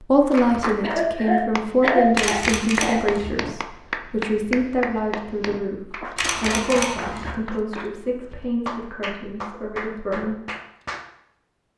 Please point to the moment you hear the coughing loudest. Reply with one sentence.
The volume of the coughing peaks at 2 seconds.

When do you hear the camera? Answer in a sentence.
You can hear the camera from 2.1 to 3.3 s and from 6.2 to 7.3 s.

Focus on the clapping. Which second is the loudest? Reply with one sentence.
The loudest moment of the clapping is at 2 seconds.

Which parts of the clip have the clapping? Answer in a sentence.
You can hear the clapping from 0.3 to 11.1 s.